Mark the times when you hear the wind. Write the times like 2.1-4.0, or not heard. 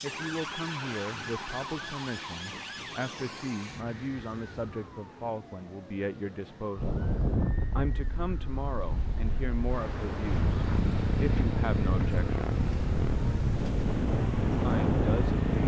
6.8-15.6.